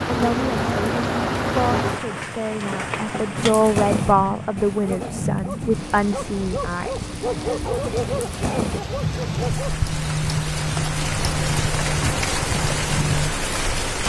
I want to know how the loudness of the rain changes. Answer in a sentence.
The loudness of the rain goes down, then up.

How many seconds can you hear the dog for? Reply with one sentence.
You can hear the dog for 5 seconds altogether.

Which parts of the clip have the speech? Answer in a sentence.
The speech can be heard from 0.1 to 7.0 s.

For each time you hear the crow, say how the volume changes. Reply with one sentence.
You can't hear the crow here.